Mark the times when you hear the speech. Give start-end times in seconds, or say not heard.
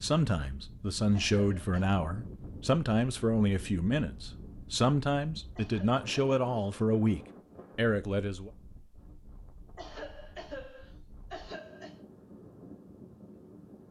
0.0-8.5.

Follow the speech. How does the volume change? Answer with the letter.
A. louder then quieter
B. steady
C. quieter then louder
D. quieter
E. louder
B.